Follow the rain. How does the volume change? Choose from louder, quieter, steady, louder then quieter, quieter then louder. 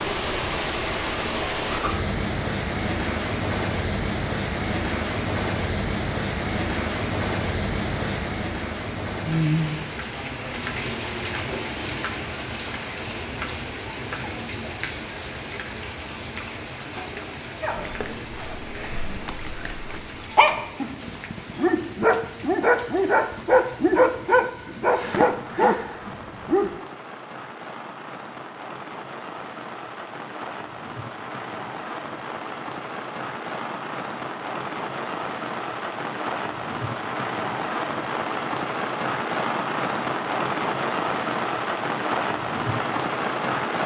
quieter then louder.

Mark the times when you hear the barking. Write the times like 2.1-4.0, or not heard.
17.6-26.8.